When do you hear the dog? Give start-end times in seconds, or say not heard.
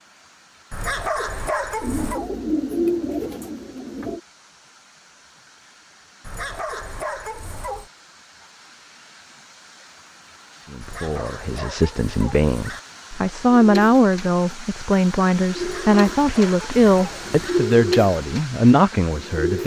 0.7-2.3, 6.2-7.9, 10.8-12.8, 15.6-17.6.